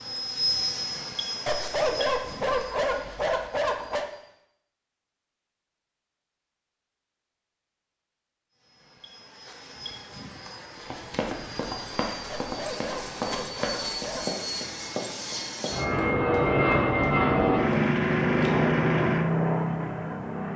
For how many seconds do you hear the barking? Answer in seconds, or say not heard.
5 s.